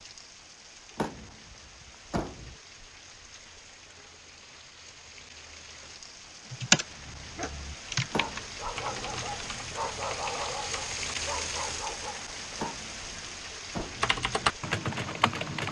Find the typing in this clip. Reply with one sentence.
You can hear the typing from 6.5 to 11.3 s and from 13.9 to 15.6 s.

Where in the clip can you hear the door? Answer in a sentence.
You can hear the door from 0.9 to 2.5 s, from 8.1 to 8.7 s and from 12.6 to 14.1 s.